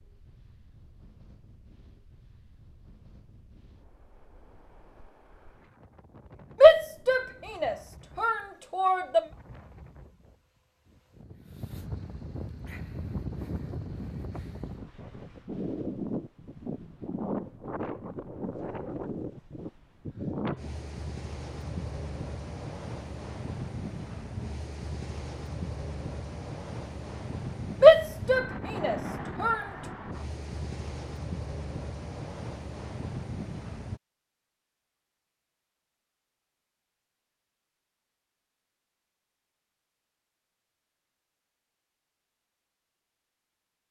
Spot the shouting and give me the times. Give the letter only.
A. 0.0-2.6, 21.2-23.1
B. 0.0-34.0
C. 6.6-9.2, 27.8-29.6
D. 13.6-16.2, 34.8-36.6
C.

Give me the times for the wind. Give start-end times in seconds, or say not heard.
0.0-34.0.